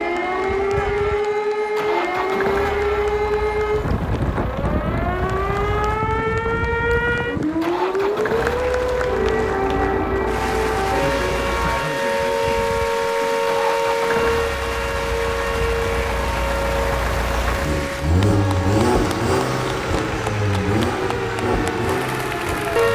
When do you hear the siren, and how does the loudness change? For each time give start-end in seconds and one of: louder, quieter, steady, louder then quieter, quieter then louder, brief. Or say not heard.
0.0-22.9 quieter.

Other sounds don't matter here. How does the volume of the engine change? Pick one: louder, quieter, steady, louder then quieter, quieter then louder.
louder.